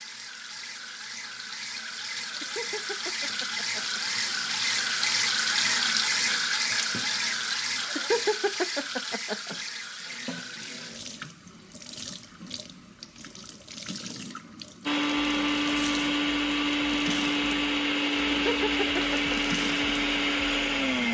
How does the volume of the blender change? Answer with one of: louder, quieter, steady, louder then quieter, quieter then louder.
steady.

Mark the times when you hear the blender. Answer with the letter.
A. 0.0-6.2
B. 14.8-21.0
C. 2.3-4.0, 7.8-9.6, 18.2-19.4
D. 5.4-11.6
B.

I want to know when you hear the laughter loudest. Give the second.
8 s.